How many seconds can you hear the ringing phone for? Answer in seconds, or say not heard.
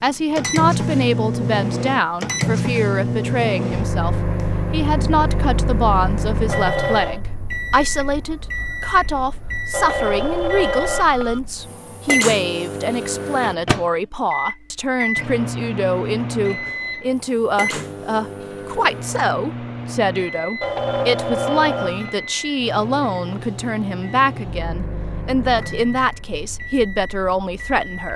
4 s.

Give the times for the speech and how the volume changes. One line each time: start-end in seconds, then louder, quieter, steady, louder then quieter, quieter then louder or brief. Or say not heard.
0.0-28.1 steady.